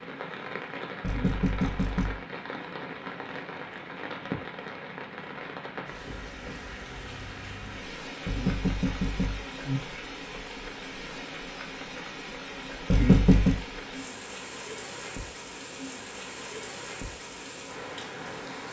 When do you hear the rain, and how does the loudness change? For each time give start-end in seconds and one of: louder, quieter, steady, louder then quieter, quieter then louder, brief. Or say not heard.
0.0-18.6 steady.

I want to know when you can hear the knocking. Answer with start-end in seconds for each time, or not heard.
1.0-2.2, 8.2-9.8, 12.9-13.6.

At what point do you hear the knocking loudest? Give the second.
13 s.